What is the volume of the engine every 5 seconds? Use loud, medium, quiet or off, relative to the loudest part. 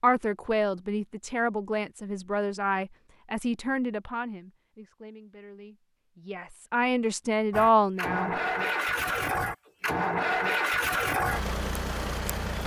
off, loud, loud.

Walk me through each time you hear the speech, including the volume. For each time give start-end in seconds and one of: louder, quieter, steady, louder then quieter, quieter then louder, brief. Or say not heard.
0.0-8.3 quieter then louder.